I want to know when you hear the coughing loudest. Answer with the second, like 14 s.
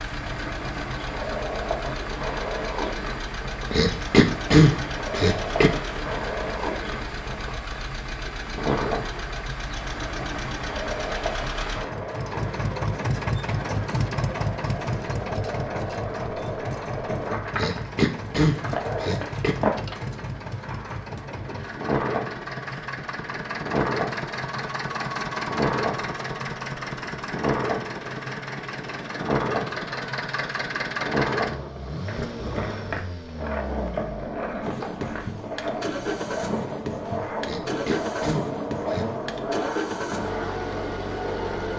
5 s.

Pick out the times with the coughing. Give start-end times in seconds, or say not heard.
3.7-5.7, 17.6-19.6, 37.4-39.0.